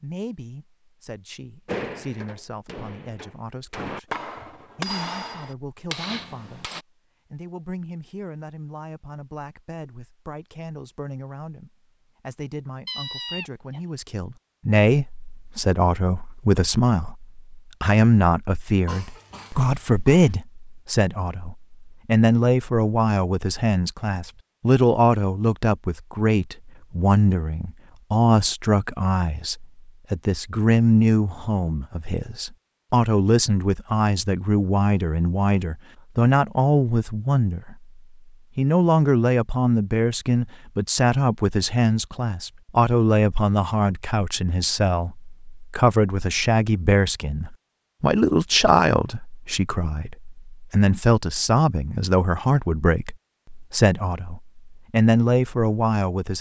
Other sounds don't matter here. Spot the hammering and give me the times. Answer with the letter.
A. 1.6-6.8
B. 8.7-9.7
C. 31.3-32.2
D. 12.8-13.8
A.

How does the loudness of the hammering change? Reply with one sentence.
The loudness of the hammering goes up.